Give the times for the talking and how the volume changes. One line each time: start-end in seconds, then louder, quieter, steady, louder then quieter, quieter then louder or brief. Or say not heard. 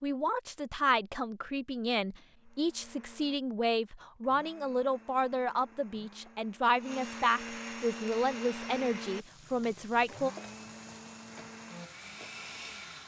0.0-10.3 steady.